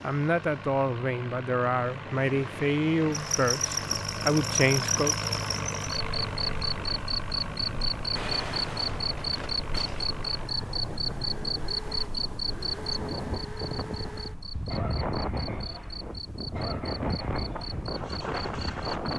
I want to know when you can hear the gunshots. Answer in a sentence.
The gunshots can be heard from 8.2 to 10.1 s.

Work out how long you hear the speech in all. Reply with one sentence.
The speech can be heard for 5 seconds in total.